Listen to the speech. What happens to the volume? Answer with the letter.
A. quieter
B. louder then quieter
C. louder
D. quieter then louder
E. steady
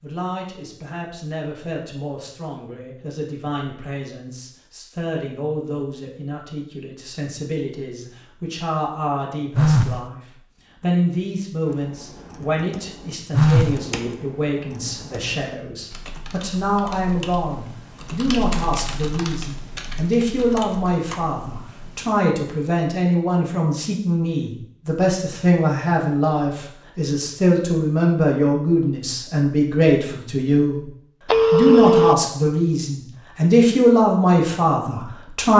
C.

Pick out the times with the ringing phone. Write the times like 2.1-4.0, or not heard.
9.6-10.0, 13.3-13.8, 31.2-32.1.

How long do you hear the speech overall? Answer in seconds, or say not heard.
35 s.